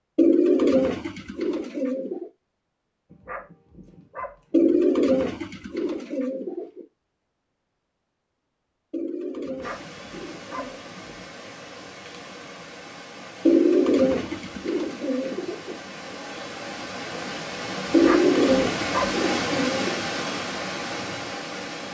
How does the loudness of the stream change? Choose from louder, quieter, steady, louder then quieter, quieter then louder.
louder.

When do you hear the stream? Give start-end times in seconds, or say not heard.
9.6-21.8.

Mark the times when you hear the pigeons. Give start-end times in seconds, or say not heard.
0.1-2.3, 4.5-6.8, 8.9-10.8, 13.4-15.8, 17.9-20.0.